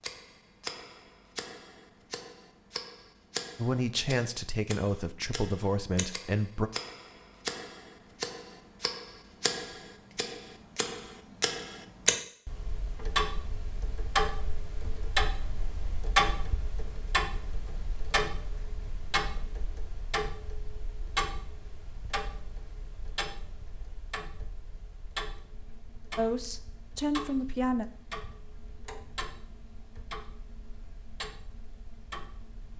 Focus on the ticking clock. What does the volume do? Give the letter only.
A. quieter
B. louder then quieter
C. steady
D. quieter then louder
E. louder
B.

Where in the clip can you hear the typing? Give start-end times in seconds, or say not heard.
not heard.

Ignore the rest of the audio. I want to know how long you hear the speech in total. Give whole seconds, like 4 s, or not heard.
5 s.